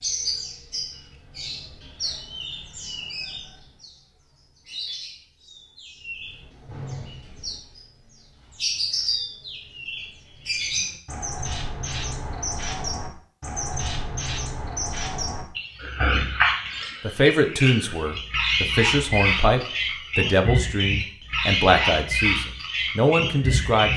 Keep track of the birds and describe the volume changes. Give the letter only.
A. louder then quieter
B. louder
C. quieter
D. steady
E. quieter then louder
B.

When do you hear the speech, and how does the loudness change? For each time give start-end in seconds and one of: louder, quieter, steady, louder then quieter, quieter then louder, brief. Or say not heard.
17.0-23.9 steady.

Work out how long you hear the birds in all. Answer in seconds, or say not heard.
24 s.